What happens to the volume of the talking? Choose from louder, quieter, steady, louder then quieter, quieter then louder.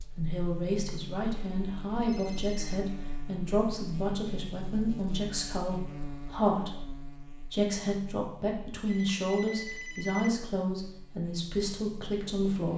steady.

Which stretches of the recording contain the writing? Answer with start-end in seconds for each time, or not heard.
not heard.